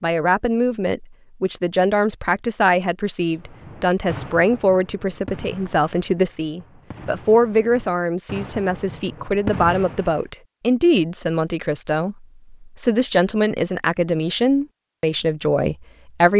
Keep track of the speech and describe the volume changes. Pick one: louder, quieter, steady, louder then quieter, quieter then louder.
steady.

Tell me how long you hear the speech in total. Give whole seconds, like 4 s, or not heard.
16 s.